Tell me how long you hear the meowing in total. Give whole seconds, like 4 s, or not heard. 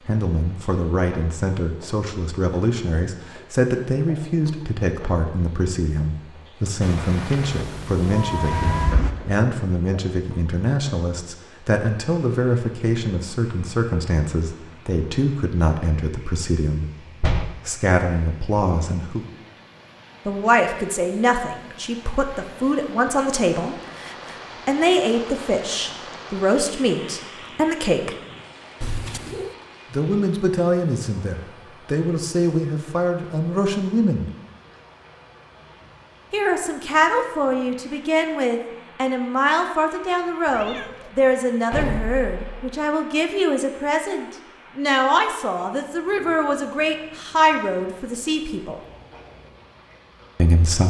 4 s.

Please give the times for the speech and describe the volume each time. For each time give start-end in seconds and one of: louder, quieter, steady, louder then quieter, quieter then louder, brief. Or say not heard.
0.1-16.9 steady
17.6-19.2 brief
20.2-28.1 steady
29.9-34.3 quieter then louder
36.3-48.8 steady
50.4-50.8 brief.